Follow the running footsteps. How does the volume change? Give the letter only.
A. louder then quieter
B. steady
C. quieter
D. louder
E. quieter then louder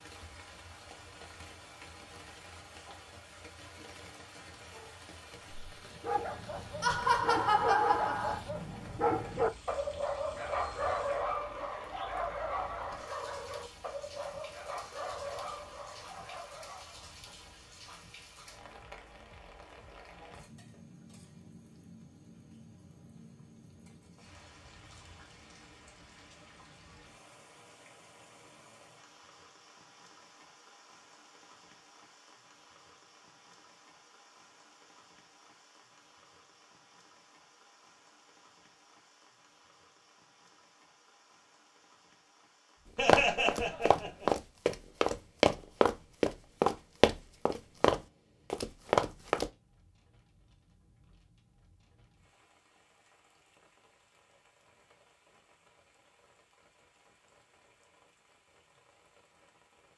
B.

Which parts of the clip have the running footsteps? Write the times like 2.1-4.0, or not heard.
43.0-49.5.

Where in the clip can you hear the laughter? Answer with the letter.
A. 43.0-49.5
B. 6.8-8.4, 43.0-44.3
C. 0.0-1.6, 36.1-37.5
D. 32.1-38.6
B.